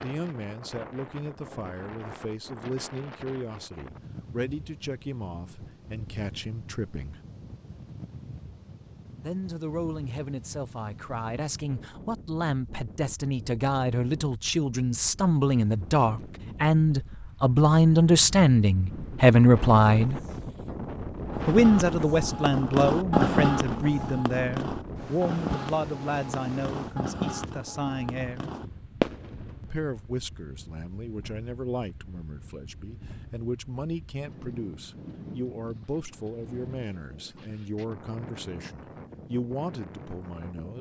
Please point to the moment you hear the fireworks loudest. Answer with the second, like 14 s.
23 s.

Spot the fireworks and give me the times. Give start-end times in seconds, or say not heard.
21.3-29.7.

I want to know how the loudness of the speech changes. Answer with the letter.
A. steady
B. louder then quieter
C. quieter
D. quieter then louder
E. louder
B.